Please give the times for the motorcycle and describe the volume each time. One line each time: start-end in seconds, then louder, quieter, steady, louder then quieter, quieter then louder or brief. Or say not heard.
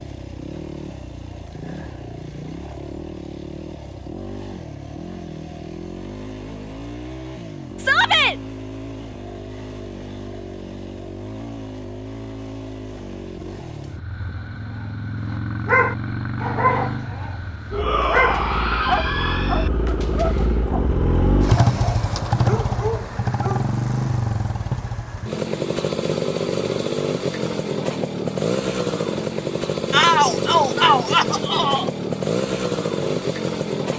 0.0-33.9 louder.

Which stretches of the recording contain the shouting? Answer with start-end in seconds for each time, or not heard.
7.8-8.3, 17.7-19.7, 29.9-31.9.